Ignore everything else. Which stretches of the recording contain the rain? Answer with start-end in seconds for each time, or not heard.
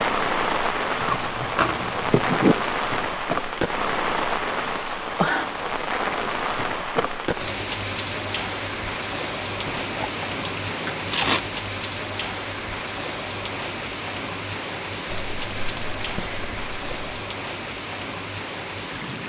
0.0-19.2.